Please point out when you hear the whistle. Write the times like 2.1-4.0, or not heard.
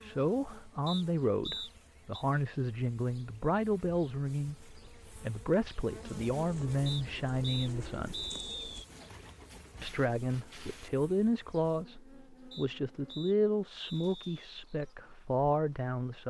0.8-2.2, 6.8-8.8, 12.5-14.5.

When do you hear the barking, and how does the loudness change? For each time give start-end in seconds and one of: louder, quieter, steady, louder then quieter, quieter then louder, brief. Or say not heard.
not heard.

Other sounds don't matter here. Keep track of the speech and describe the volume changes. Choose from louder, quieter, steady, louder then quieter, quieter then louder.
steady.